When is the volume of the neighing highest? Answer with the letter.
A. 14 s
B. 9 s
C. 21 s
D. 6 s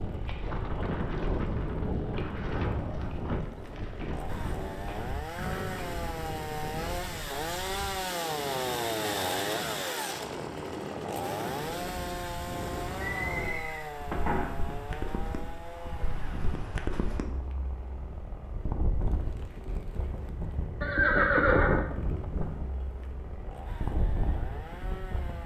C.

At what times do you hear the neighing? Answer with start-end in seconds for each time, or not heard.
5.3-6.1, 13.0-14.6, 20.8-21.9.